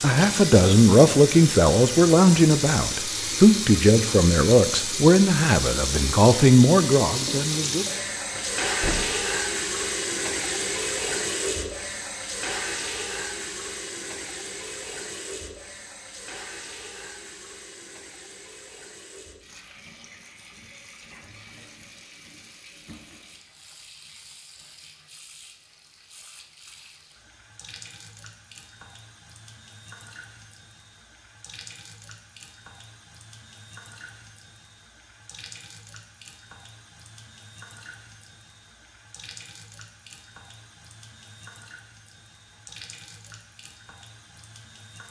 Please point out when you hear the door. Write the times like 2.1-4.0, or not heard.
8.3-9.2.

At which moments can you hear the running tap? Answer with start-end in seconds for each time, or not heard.
0.0-45.0.